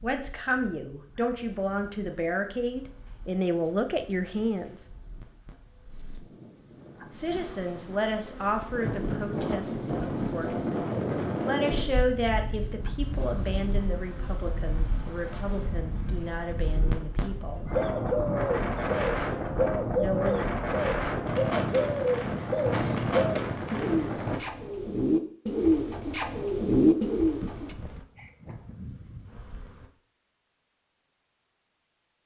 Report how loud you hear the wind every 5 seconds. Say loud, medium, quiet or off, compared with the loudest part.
quiet, medium, loud, loud, loud, off, off.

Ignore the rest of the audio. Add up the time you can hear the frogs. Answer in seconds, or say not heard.
not heard.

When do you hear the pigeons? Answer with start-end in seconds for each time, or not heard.
17.7-27.7.